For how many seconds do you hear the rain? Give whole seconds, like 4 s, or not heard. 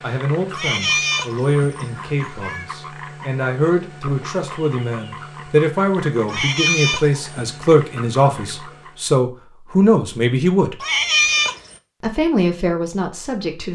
not heard.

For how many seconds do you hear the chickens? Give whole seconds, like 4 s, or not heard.
not heard.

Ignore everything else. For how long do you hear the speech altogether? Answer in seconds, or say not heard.
12 s.